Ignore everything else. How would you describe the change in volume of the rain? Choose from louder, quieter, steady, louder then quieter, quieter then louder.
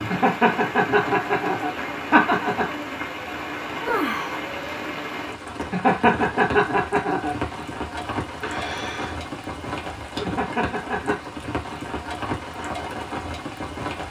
steady.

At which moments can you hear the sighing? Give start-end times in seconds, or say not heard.
3.8-4.3, 8.4-9.2.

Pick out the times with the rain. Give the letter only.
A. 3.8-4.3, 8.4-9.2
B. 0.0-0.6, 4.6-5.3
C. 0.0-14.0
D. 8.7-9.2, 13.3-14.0
C.